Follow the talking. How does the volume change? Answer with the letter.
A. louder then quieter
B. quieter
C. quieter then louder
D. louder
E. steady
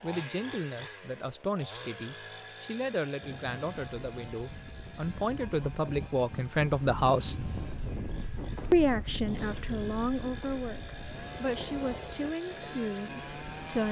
A.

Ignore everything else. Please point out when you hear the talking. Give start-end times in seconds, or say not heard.
0.0-7.5, 8.7-13.8.